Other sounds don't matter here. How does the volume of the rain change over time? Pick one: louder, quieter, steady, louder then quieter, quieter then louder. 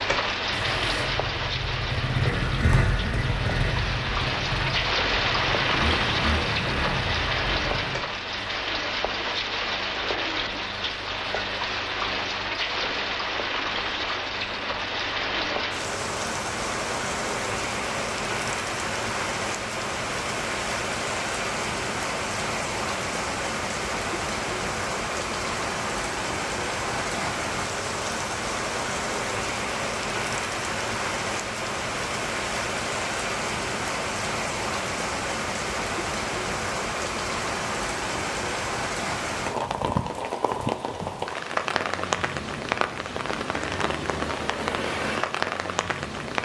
steady.